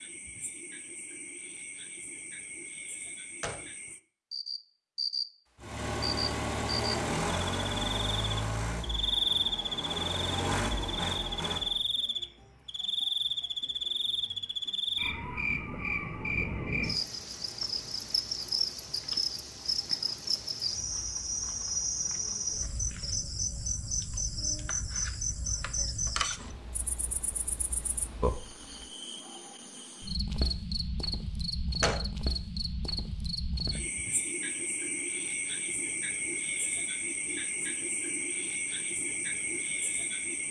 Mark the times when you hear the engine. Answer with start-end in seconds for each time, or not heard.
5.6-11.8.